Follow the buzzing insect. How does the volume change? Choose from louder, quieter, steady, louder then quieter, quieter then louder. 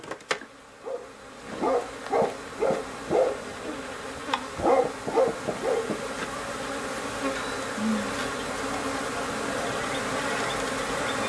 louder.